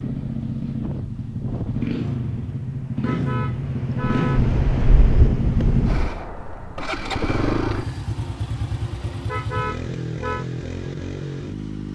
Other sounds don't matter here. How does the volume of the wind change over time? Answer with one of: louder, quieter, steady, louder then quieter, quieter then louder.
quieter then louder.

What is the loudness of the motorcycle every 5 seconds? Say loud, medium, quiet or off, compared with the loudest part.
loud, loud, medium.